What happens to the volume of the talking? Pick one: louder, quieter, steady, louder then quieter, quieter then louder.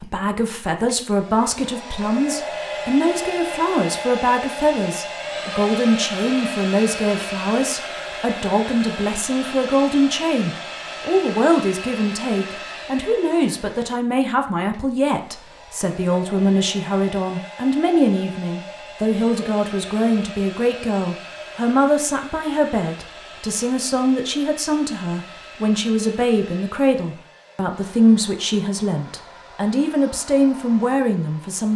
steady.